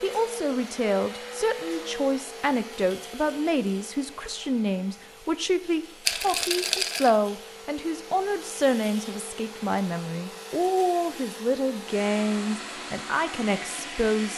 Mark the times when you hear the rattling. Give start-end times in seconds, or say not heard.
6.0-7.1.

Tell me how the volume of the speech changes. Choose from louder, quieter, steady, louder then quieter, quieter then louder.
steady.